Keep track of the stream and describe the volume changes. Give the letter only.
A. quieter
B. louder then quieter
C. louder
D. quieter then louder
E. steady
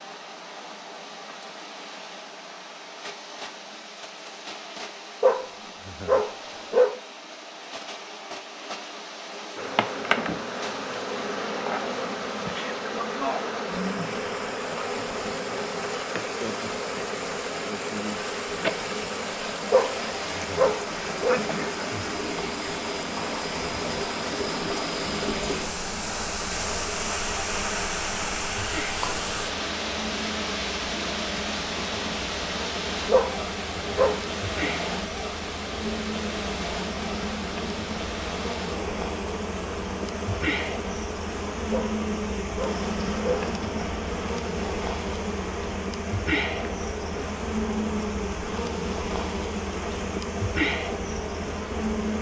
B.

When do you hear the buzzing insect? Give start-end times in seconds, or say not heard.
9.6-52.1.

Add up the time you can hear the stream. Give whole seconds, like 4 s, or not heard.
52 s.